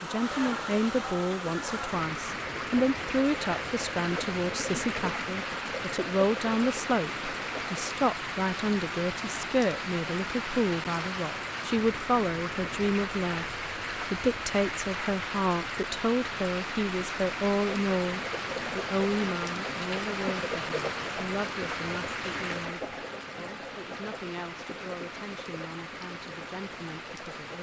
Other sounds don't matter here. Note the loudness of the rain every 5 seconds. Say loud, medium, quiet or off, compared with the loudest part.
loud, loud, loud, loud, loud, medium.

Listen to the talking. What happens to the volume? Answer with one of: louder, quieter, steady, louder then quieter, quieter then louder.
quieter.